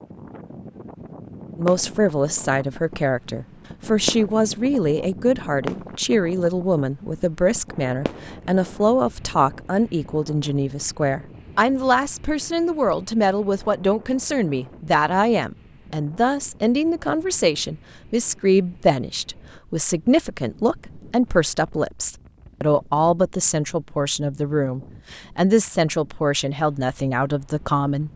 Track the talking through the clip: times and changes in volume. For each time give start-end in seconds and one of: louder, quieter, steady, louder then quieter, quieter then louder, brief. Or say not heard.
1.6-28.1 steady.